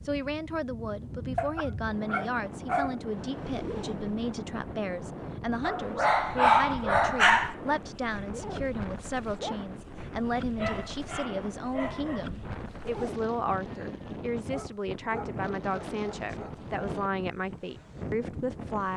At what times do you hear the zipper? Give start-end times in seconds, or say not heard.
3.1-4.0, 8.2-9.6, 12.8-13.2.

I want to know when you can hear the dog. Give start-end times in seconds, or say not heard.
1.4-3.0, 5.6-7.5, 10.6-12.3, 14.3-16.7.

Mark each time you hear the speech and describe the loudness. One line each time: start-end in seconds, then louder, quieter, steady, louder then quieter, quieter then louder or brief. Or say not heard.
0.0-18.9 steady.